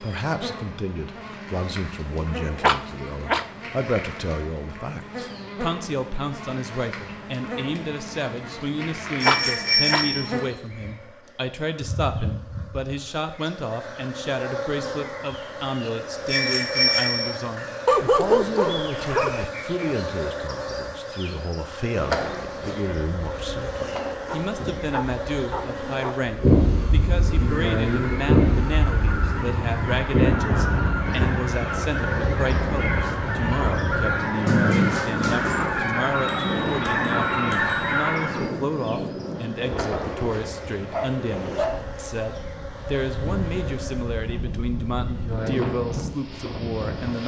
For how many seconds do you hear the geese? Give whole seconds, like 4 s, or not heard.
11 s.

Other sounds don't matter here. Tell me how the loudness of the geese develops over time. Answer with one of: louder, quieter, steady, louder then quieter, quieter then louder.
louder.